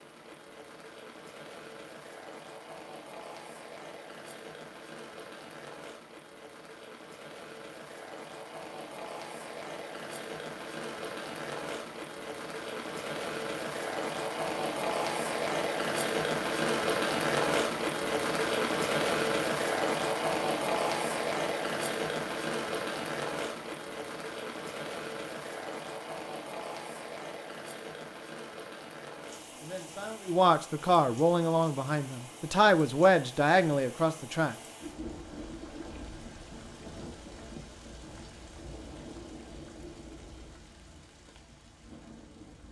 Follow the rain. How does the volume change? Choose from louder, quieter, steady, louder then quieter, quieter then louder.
louder then quieter.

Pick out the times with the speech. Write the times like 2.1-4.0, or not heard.
29.6-34.5.